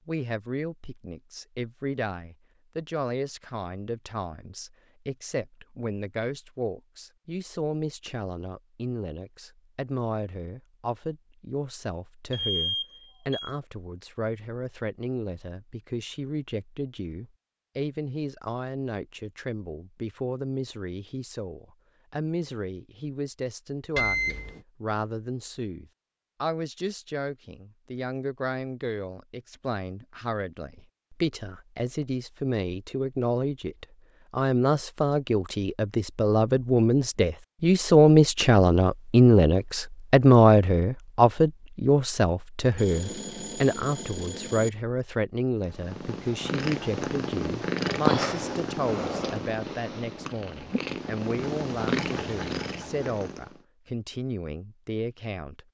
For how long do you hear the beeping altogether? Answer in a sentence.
The beeping can be heard for 4 seconds in total.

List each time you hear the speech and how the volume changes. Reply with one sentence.
You can hear the speech from 0.1 to 55.6 s, getting louder then quieter.